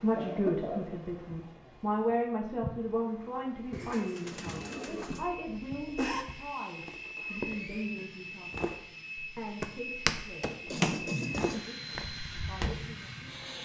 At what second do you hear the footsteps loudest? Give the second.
11 s.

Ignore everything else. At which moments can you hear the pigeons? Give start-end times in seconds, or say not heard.
3.7-5.3.